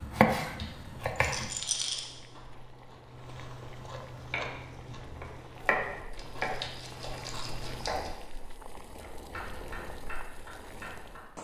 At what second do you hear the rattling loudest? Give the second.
2 s.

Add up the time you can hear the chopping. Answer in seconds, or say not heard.
8 s.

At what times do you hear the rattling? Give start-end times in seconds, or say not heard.
1.1-2.1, 6.2-8.1.